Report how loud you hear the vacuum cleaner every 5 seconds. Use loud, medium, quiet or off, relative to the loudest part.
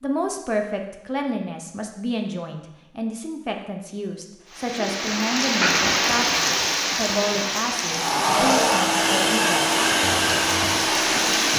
off, loud, loud.